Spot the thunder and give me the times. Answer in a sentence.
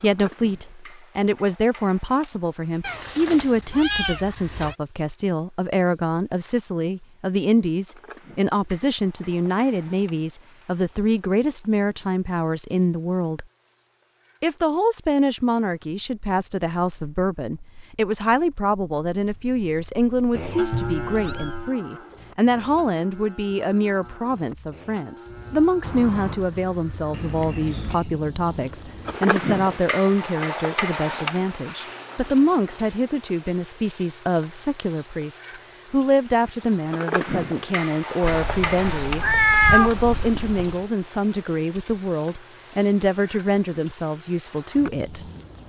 The thunder can't be heard in this clip.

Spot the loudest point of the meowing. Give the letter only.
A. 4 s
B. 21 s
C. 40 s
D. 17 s
C.